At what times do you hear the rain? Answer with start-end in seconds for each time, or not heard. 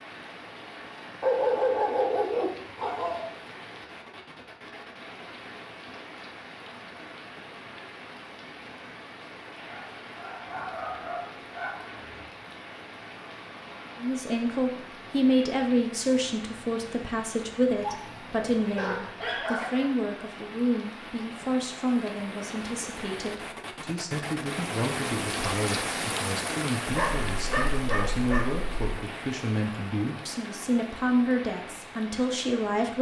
0.0-32.9.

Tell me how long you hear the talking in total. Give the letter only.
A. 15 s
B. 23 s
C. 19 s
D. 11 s
C.